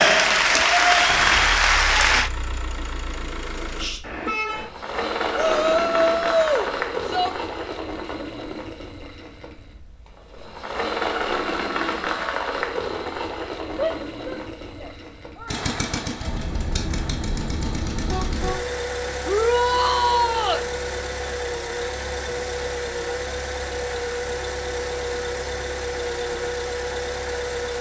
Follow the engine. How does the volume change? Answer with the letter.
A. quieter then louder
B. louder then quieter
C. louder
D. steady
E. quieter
D.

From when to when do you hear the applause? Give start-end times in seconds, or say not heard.
0.0-2.3.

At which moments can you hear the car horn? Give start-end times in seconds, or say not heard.
4.0-4.7, 16.2-18.6.